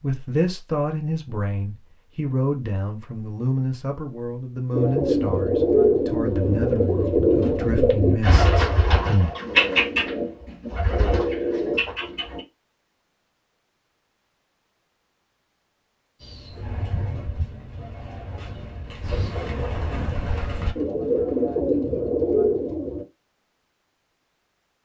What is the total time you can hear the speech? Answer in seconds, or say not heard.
9 s.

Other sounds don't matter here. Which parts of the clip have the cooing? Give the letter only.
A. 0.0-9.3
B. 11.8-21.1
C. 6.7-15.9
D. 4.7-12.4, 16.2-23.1
D.